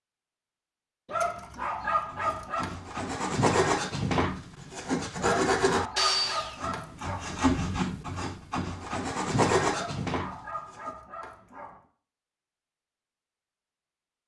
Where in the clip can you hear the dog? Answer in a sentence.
The dog can be heard from 1.1 to 2.8 s, from 5.2 to 7.5 s and from 9.7 to 11.8 s.